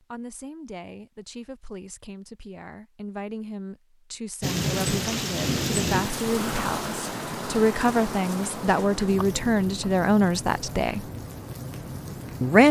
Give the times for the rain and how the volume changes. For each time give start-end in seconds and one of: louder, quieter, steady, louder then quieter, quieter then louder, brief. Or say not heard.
4.4-12.6 quieter.